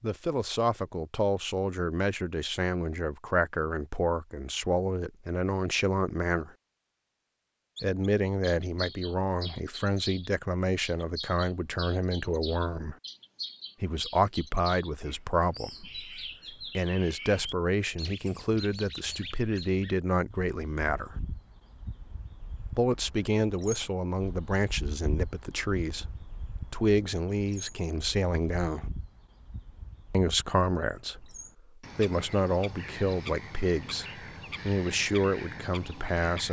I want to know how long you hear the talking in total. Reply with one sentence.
The talking can be heard for 31 seconds in total.